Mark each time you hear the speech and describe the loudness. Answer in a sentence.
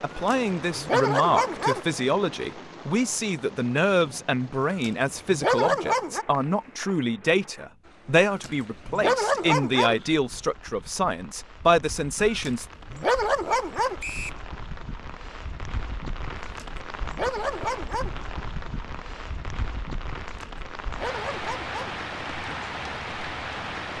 You can hear the speech from 0.0 to 12.7 s, at a steady volume.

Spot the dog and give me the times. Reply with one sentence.
You can hear the dog from 0.1 to 1.9 s, from 4.7 to 6.2 s, from 8.2 to 9.9 s, from 12.2 to 13.9 s, from 16.4 to 18.1 s and from 20.4 to 21.9 s.